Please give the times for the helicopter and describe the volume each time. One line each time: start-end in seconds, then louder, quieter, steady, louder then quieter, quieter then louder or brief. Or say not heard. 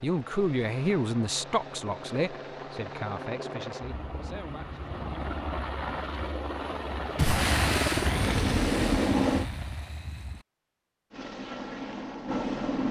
0.0-9.5 louder
11.1-12.8 brief.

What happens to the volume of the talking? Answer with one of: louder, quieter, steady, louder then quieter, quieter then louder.
quieter.